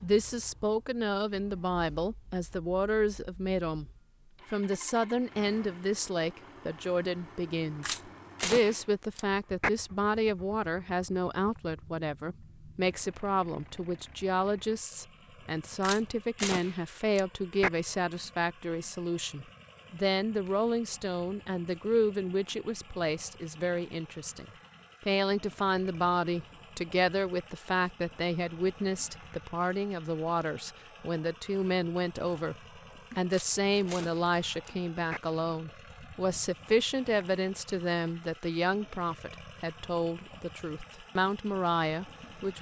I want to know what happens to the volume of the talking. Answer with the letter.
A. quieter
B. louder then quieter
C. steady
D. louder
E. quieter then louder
C.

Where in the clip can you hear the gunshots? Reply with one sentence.
The gunshots can be heard from 7.8 to 9.7 s, from 15.8 to 17.7 s and from 33.3 to 35.2 s.